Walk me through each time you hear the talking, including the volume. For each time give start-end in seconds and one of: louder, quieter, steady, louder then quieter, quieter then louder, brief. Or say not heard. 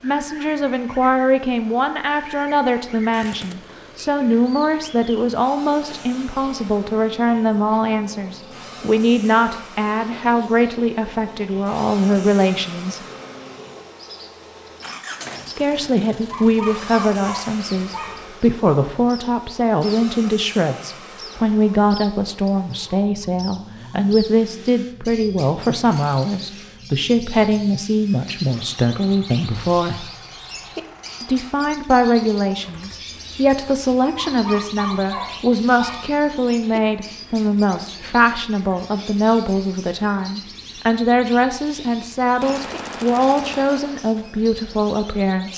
0.0-13.0 steady
15.4-30.1 steady
31.2-45.5 steady.